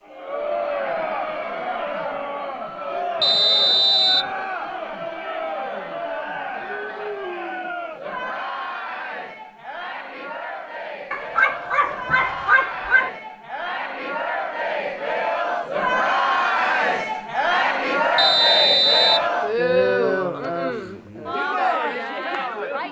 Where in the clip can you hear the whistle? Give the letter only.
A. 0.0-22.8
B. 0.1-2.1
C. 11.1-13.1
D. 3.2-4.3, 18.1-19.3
D.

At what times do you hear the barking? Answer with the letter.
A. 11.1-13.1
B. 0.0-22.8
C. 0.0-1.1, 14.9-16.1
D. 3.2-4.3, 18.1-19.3
A.